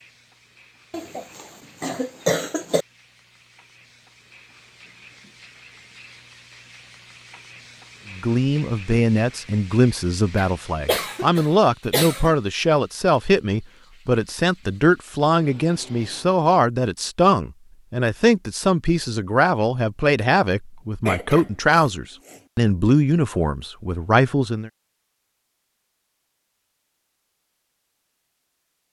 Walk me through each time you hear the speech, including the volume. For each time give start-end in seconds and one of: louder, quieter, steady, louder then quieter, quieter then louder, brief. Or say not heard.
8.1-24.7 steady.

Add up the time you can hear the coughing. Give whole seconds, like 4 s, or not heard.
5 s.